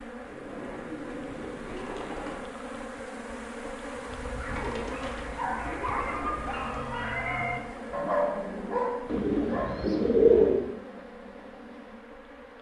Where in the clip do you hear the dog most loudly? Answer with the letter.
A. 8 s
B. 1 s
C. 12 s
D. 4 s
A.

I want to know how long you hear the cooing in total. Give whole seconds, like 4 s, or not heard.
6 s.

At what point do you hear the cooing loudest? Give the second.
10 s.